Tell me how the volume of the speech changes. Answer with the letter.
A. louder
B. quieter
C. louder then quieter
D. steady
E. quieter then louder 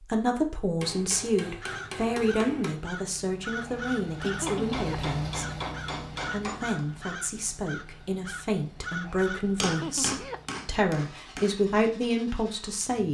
E.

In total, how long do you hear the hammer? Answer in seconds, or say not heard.
6 s.